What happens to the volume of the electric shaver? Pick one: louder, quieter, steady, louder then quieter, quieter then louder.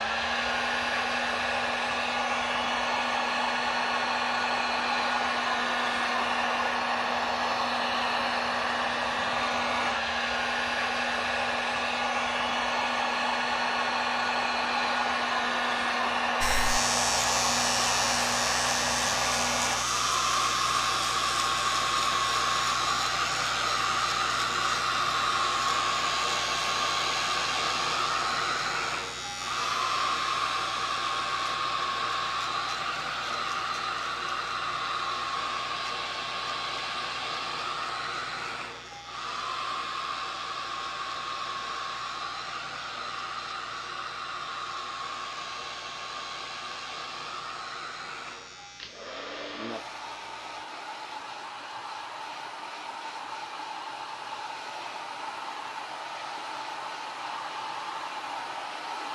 quieter.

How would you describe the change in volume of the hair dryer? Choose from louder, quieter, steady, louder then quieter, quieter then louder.
quieter.